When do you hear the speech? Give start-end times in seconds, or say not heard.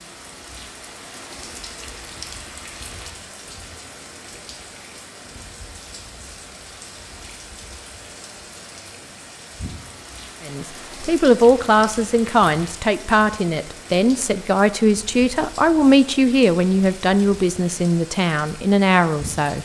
10.4-19.6.